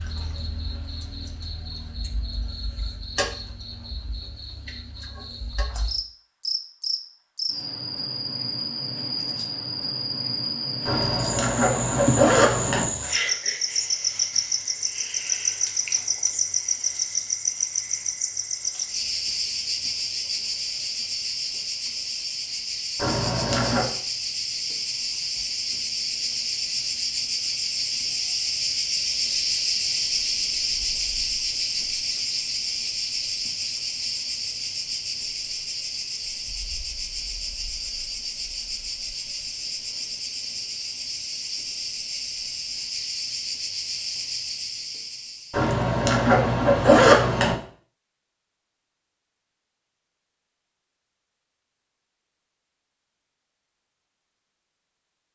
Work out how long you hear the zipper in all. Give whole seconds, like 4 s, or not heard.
5 s.